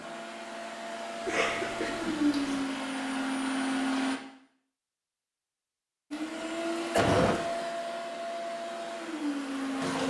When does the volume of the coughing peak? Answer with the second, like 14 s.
7 s.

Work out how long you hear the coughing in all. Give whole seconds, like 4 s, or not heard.
2 s.